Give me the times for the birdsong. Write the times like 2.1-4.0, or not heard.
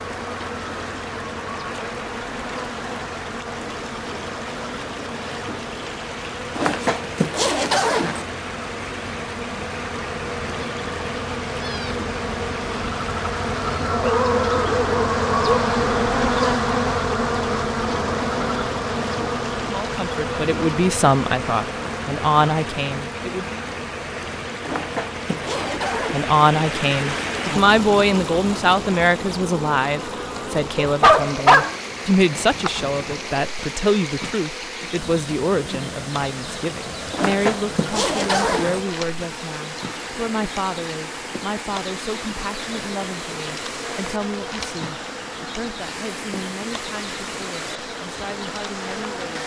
not heard.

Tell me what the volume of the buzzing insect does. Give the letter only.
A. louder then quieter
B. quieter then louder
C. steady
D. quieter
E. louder
A.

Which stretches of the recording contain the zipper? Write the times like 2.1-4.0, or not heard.
6.5-8.2, 24.6-26.1, 37.1-38.8.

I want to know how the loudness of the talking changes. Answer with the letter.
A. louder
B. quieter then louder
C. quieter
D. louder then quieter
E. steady
C.